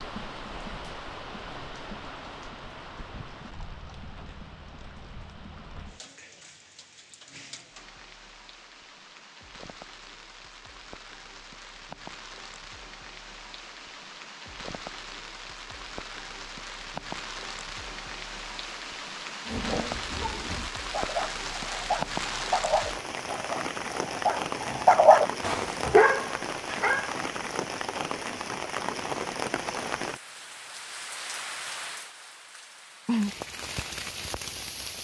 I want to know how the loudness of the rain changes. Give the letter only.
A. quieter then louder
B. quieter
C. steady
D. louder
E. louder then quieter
D.